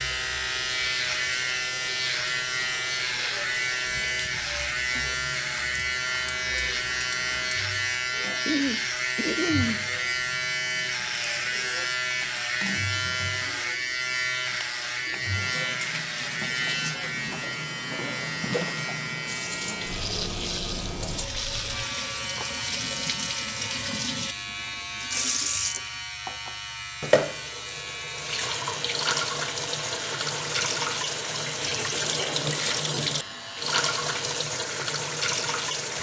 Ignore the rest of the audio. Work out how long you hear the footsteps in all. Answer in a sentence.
The footsteps can't be heard in this clip.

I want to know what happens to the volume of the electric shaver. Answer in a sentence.
The volume of the electric shaver goes down.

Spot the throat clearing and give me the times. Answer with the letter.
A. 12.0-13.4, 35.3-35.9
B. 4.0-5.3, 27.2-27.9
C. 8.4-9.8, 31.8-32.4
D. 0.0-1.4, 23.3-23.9
C.